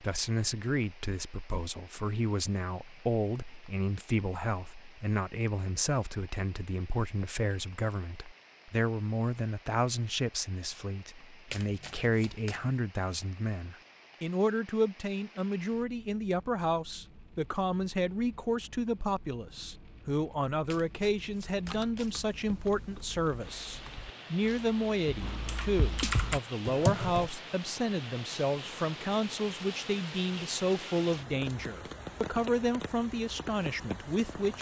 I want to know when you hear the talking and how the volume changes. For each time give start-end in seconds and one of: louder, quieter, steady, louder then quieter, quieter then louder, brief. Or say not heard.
0.0-34.5 steady.